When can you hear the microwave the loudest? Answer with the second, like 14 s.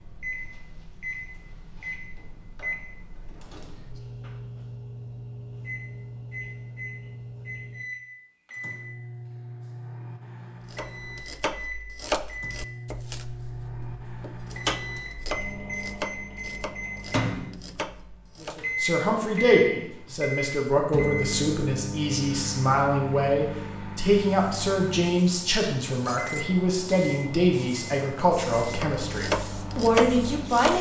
19 s.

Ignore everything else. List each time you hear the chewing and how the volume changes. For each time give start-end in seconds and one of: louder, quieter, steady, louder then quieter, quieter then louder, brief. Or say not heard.
not heard.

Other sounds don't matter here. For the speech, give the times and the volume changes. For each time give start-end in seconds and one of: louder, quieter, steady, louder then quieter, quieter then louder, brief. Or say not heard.
18.4-30.7 steady.